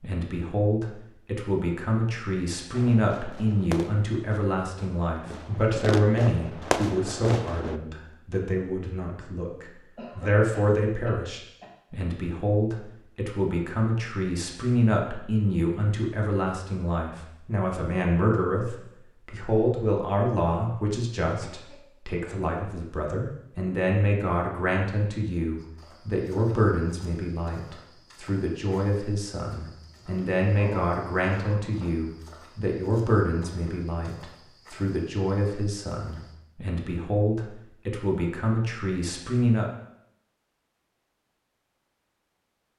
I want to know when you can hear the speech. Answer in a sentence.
The speech can be heard from 0.0 to 39.7 s.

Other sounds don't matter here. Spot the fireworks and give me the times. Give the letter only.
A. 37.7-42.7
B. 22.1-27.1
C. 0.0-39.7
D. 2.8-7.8
D.